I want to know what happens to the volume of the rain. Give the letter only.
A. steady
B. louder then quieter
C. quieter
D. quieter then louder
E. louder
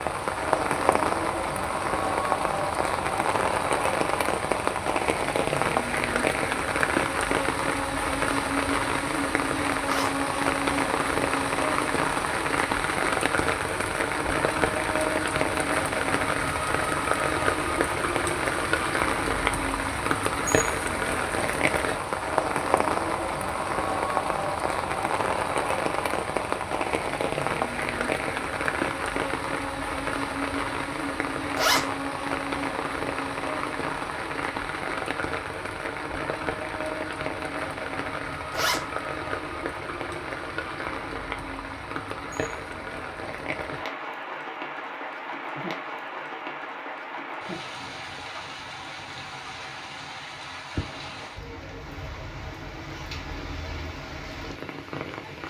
C.